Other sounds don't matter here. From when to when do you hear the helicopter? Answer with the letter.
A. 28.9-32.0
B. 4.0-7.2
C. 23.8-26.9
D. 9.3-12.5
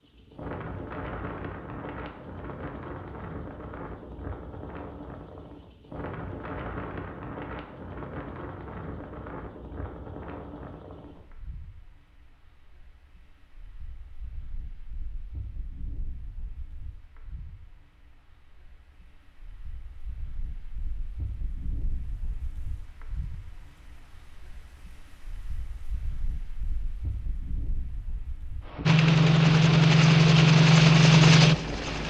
A.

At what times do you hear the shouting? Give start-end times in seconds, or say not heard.
not heard.